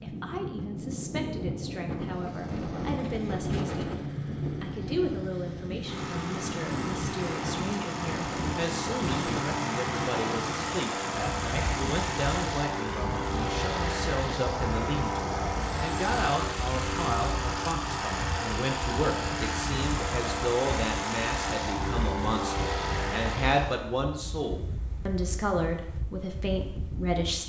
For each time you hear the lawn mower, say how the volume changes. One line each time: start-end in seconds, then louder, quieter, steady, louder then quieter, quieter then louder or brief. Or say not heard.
1.9-23.9 louder.